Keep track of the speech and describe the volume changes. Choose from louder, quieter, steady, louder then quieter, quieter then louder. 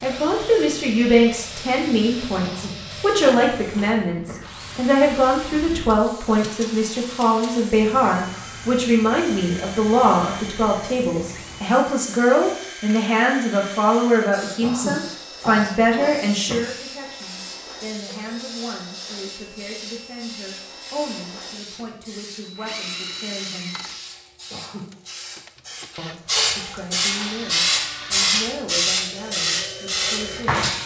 quieter.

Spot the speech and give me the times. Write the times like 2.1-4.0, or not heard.
0.0-23.8, 25.9-30.6.